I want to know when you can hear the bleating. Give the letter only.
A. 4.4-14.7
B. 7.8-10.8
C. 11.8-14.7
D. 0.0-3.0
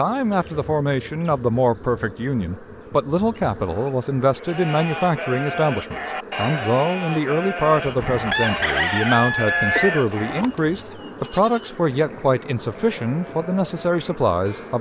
A.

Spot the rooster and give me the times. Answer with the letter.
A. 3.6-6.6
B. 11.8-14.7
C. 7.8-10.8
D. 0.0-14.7
C.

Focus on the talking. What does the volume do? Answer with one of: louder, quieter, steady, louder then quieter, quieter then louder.
steady.